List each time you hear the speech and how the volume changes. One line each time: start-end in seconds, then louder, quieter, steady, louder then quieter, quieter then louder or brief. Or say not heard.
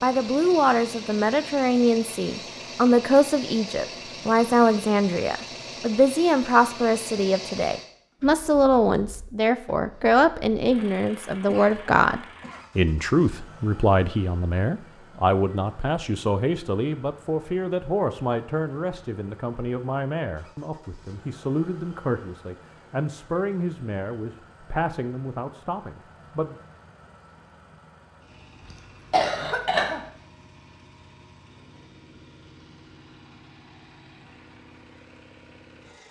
0.0-26.6 quieter.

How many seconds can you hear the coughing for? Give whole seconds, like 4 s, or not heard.
3 s.